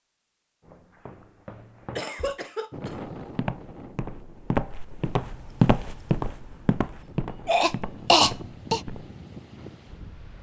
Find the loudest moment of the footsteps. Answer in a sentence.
The loudest moment of the footsteps is at 6 seconds.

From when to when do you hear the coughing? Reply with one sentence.
You can hear the coughing from 1.9 to 3.0 s and from 7.5 to 8.8 s.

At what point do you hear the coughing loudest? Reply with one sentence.
The loudest moment of the coughing is at 8 seconds.